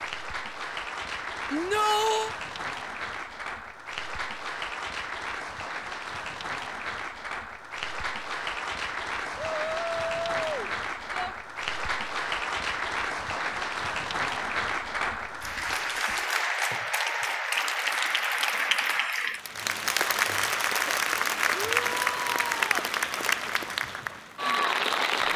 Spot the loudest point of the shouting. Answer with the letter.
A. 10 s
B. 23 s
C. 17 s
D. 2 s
D.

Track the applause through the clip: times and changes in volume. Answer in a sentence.
The applause can be heard from 0.0 to 25.3 s, getting louder.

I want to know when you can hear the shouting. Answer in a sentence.
You can hear the shouting from 1.5 to 2.4 s, from 9.4 to 11.3 s and from 21.5 to 22.8 s.